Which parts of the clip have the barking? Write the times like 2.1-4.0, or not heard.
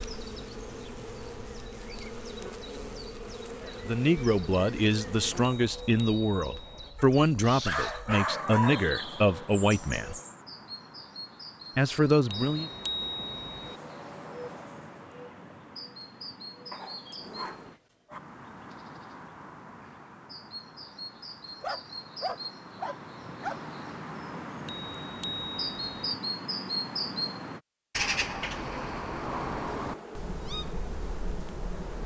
7.0-8.9, 16.7-18.2, 21.6-23.7.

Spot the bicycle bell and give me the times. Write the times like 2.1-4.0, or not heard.
5.5-6.9, 12.2-13.8, 24.6-26.1.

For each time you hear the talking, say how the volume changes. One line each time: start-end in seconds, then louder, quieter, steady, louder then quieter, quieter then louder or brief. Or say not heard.
3.6-10.2 steady
11.8-12.7 brief.